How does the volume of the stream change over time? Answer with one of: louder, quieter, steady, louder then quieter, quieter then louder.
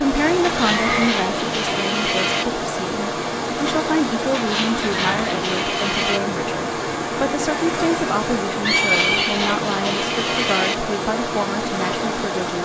steady.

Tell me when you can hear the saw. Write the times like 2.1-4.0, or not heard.
0.4-2.5, 4.3-6.2, 8.8-10.8.